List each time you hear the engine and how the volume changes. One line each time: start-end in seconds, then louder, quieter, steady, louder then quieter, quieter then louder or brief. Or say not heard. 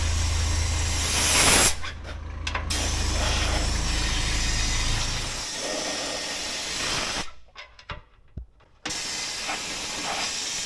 0.0-5.5 quieter then louder.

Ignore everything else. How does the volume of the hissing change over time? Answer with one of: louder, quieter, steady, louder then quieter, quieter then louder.
quieter.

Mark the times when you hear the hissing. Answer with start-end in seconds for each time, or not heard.
0.0-10.6.